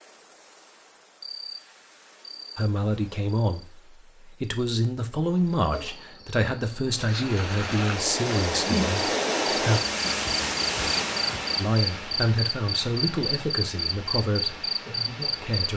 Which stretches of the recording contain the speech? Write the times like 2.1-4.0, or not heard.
2.5-9.8, 11.6-15.7.